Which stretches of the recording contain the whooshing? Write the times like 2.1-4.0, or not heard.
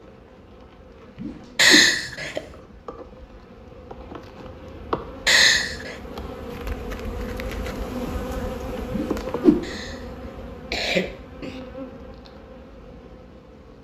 1.1-1.9, 8.9-9.7.